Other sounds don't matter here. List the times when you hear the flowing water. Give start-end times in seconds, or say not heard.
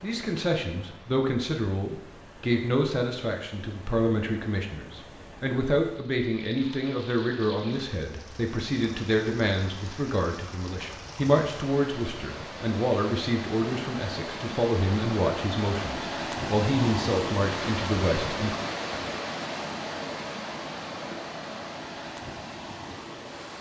0.0-23.5.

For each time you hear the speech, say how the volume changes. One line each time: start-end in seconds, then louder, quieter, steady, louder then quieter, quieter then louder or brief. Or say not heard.
0.0-18.6 steady.